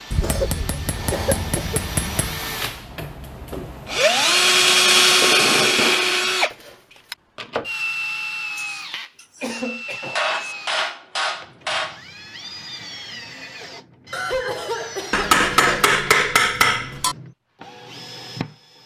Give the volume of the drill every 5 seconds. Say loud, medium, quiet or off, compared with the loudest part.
loud, loud, quiet, quiet.